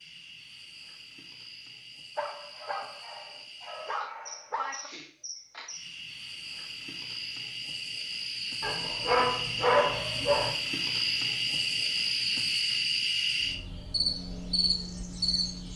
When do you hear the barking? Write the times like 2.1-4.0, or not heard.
2.1-4.9, 8.6-10.6.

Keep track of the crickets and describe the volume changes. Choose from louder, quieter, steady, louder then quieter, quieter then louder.
louder.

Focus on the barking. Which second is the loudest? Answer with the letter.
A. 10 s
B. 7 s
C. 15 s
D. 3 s
A.